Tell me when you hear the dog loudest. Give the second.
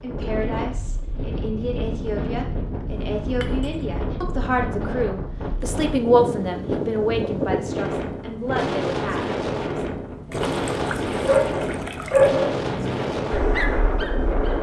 12 s.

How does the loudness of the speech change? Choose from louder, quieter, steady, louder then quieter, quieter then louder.
louder then quieter.